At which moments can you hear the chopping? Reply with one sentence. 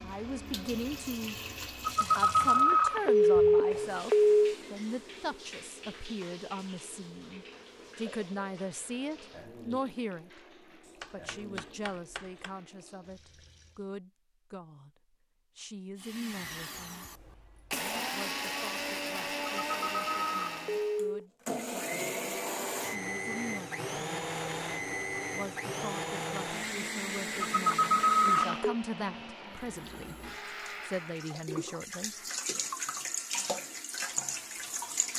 You can hear the chopping from 10.8 to 12.6 s.